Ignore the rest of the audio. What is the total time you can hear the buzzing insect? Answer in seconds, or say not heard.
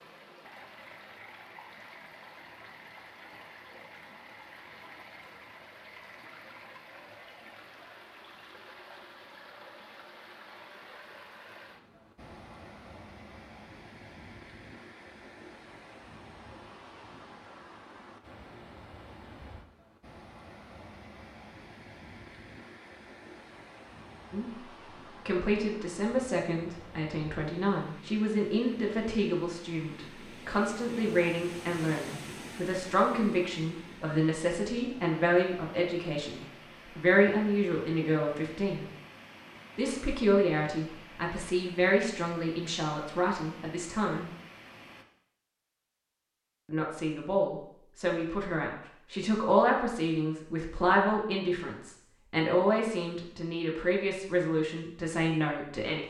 not heard.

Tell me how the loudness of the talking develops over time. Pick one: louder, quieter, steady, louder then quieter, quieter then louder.
steady.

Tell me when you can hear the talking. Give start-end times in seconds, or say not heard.
24.3-38.9, 39.8-44.3, 46.6-56.0.